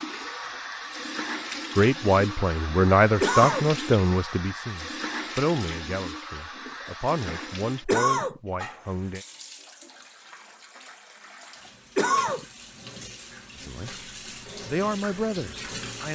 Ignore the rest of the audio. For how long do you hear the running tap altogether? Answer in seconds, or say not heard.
16 s.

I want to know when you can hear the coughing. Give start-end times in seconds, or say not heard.
3.2-3.7, 7.8-8.4, 11.9-12.4.